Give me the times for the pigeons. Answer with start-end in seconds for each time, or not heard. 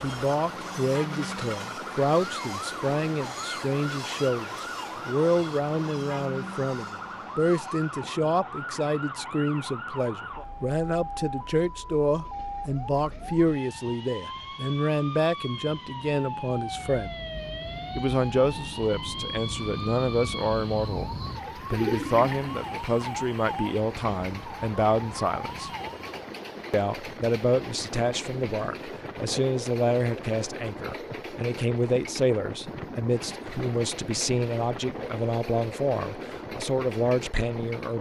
21.4-22.9.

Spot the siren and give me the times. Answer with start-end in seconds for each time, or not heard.
0.0-26.2.